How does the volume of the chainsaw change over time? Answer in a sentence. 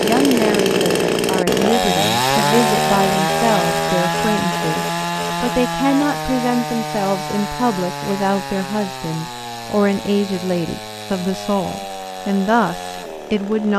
The loudness of the chainsaw goes down.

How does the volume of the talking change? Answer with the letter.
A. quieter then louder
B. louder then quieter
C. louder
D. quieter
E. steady
E.